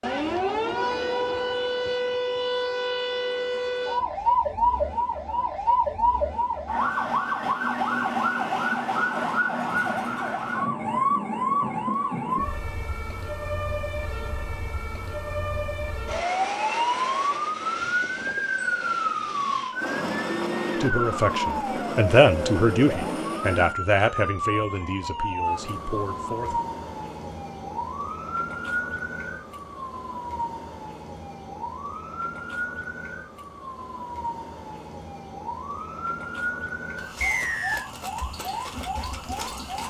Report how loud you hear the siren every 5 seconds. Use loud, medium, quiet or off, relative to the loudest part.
loud, loud, loud, loud, loud, medium, medium, medium.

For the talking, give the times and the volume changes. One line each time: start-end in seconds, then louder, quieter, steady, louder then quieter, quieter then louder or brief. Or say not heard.
20.8-26.6 louder then quieter.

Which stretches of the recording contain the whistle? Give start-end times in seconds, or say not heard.
37.2-37.9.